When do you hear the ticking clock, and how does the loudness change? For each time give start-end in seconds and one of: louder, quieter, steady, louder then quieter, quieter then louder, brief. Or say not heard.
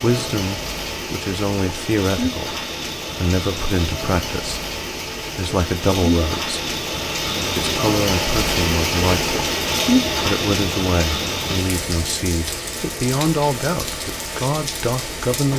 not heard.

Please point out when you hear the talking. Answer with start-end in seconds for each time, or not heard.
0.0-4.6, 5.3-6.5, 7.4-9.3, 10.2-15.5.